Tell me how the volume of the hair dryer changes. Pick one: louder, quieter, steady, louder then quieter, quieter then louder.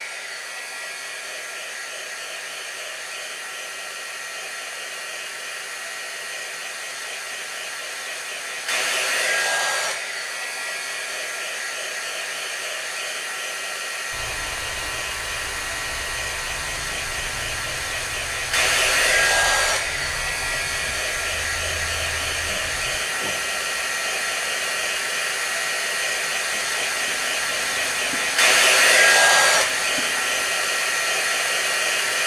louder.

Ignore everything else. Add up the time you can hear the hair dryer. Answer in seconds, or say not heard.
32 s.